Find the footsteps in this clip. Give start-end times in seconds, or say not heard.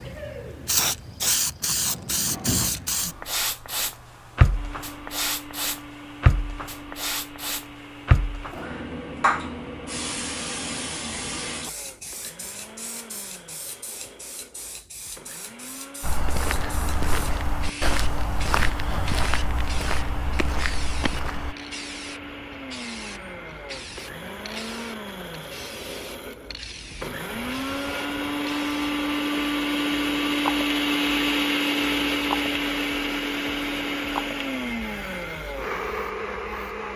16.0-21.6.